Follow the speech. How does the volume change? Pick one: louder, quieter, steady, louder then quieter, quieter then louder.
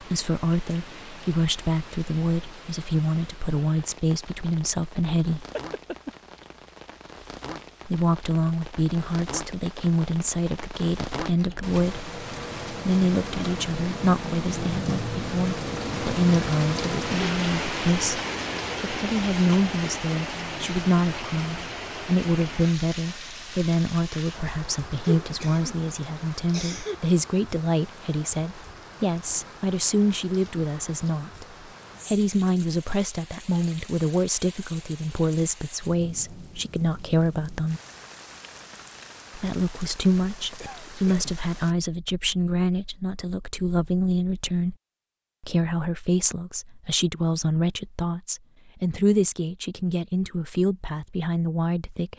steady.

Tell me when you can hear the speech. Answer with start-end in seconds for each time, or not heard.
0.0-5.5, 7.8-18.2, 18.8-31.4, 32.0-37.8, 39.4-44.8, 45.4-52.1.